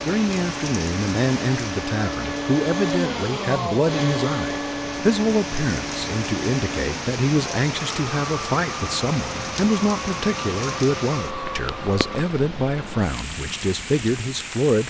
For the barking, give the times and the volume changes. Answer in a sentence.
The barking can't be heard in this clip.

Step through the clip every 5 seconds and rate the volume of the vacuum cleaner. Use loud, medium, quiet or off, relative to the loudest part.
loud, medium, medium.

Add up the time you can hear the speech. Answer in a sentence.
The speech can be heard for 15 seconds in total.